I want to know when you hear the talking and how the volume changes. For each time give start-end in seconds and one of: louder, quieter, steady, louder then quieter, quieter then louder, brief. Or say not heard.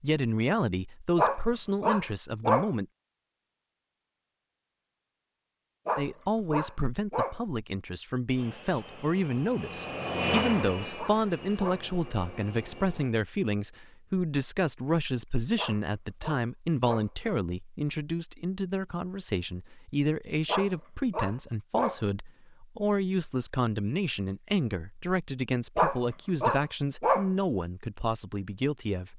0.0-2.9 brief
6.0-29.1 steady.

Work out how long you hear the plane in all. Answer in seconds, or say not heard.
5 s.